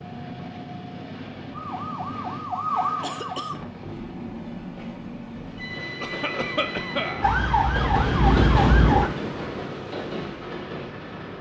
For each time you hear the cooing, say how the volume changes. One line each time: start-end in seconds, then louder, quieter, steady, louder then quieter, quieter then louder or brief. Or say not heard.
not heard.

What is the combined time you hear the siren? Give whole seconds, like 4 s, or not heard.
4 s.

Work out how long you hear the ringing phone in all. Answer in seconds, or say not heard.
2 s.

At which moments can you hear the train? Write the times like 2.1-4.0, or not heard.
0.0-11.3.